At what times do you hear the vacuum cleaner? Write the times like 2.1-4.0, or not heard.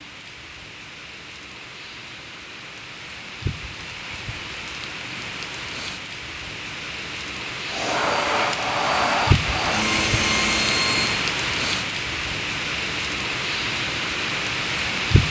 7.7-11.2.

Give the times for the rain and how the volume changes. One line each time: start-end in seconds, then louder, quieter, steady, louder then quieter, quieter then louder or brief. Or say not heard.
0.0-15.2 louder.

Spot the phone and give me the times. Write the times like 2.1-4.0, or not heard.
not heard.